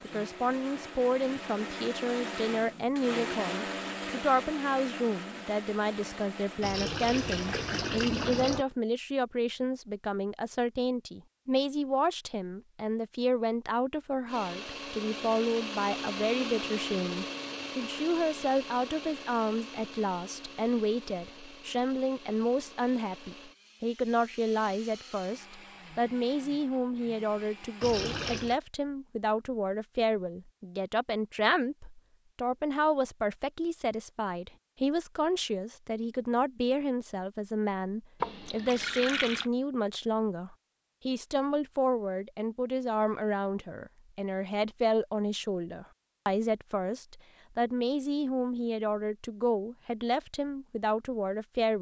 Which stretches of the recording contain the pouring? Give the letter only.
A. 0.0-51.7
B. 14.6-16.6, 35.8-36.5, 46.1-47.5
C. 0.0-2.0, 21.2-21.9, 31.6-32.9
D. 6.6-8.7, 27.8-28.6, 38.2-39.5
D.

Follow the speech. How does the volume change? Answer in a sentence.
The volume of the speech stays about the same.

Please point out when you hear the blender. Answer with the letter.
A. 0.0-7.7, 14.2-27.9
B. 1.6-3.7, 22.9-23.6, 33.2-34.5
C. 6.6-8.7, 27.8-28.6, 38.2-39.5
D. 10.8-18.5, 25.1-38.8
A.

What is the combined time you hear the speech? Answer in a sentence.
You can hear the speech for 52 seconds altogether.